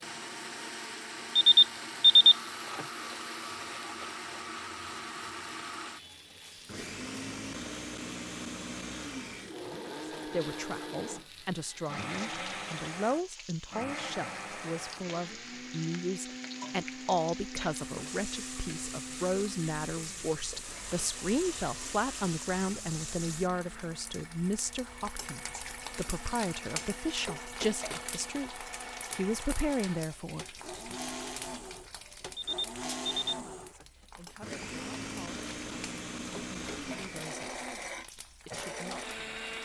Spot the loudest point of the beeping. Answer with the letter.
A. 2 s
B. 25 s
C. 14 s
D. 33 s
A.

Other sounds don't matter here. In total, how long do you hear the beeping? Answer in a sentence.
You can hear the beeping for 3 seconds altogether.